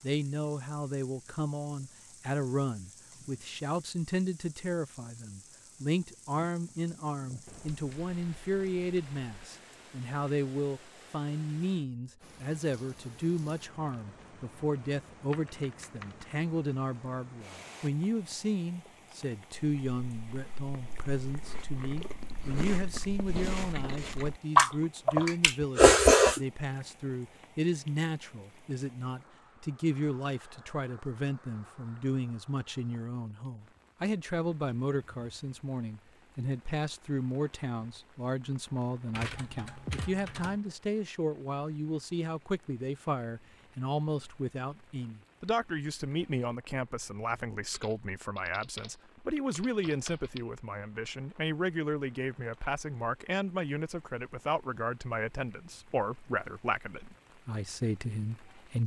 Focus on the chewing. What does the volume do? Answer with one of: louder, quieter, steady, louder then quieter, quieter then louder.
louder.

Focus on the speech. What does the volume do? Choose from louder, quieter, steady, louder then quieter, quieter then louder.
steady.